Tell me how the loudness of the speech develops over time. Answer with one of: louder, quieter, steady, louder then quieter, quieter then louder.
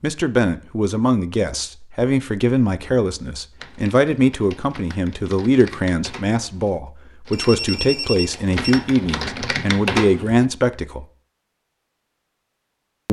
steady.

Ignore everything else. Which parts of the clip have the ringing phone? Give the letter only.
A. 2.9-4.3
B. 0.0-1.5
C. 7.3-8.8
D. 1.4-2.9
C.